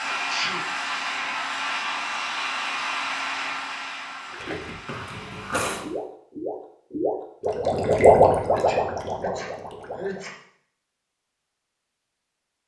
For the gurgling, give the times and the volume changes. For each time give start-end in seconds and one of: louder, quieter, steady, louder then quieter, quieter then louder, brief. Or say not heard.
4.2-10.2 louder then quieter.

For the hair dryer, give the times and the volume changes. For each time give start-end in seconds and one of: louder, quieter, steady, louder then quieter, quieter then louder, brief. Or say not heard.
0.0-5.7 quieter.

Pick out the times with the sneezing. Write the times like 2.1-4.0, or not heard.
0.1-0.7, 4.8-5.9, 8.5-10.3.